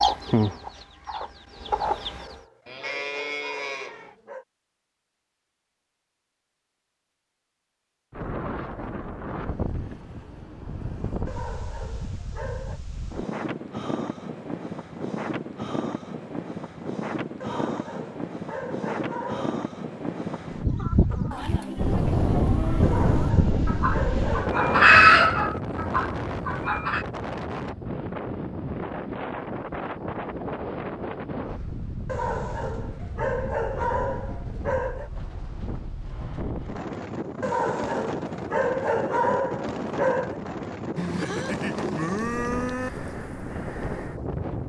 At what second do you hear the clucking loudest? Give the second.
25 s.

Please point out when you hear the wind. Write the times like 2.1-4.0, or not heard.
8.1-44.6.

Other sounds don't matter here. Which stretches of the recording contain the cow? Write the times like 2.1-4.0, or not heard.
2.6-4.2, 21.3-23.2, 41.0-42.9.